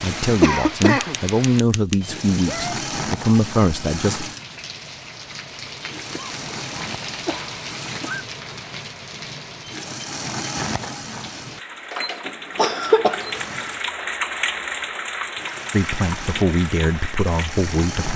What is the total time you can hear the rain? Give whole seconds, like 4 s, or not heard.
18 s.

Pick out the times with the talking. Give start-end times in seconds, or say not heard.
0.0-4.3, 15.7-18.1.